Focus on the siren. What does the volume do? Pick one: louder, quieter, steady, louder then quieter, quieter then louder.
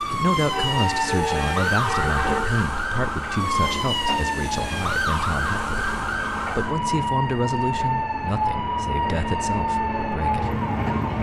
steady.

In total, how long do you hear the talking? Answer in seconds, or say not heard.
11 s.